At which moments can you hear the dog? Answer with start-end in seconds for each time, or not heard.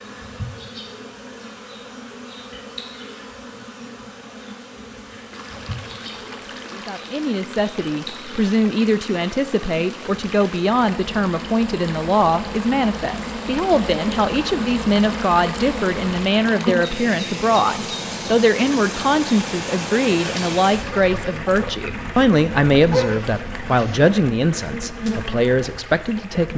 22.8-24.0.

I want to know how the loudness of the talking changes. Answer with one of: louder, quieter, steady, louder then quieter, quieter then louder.
steady.